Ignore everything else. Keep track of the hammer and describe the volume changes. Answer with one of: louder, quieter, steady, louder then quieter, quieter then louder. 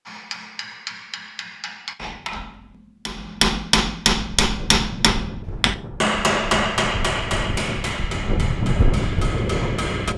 louder then quieter.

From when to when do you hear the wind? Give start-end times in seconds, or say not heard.
4.4-10.1.